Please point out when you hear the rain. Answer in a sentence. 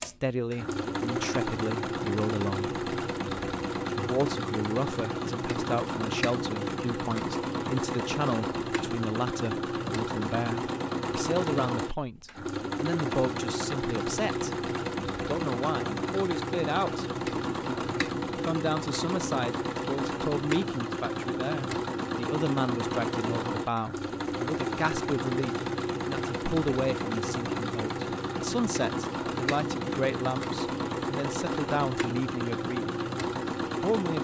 The rain can't be heard in this clip.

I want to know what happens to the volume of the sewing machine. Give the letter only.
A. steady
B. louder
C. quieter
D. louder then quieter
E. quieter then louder
A.